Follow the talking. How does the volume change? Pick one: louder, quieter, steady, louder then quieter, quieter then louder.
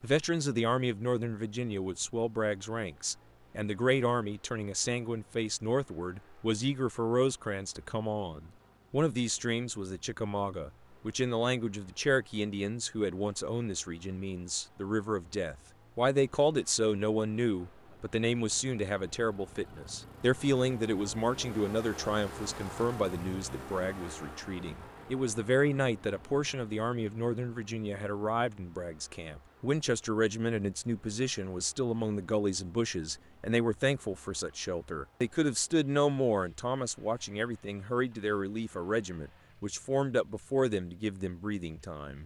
steady.